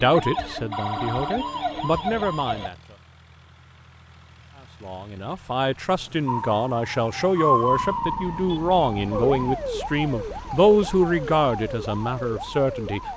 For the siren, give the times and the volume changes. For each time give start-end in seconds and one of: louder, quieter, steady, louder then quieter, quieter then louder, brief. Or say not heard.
0.0-2.7 brief
6.2-13.1 quieter.